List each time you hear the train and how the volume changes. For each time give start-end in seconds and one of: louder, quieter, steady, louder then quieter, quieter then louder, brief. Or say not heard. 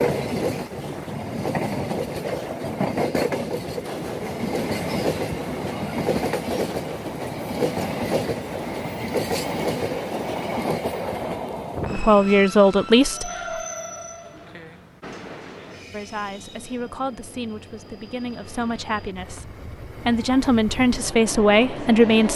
0.0-22.3 quieter.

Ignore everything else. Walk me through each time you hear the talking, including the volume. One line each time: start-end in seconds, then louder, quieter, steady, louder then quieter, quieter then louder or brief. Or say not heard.
11.9-13.3 brief
15.9-22.3 louder.